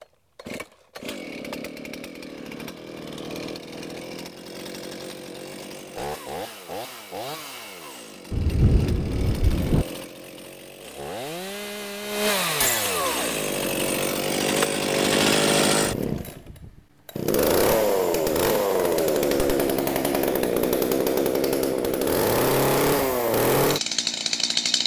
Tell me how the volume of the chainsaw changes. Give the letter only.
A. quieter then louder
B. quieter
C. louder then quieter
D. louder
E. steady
D.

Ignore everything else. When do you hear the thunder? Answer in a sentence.
The thunder can be heard from 8.3 to 9.8 s.